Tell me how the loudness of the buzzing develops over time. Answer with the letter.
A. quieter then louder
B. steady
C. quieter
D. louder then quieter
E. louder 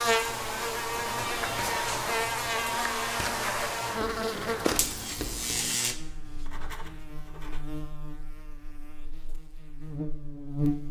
C.